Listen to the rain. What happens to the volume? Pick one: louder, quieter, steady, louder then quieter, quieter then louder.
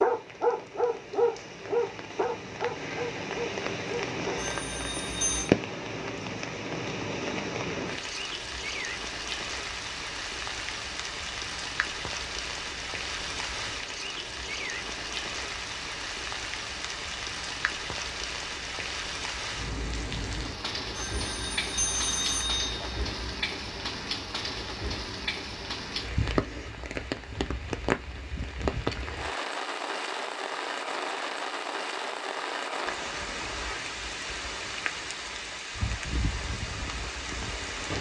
steady.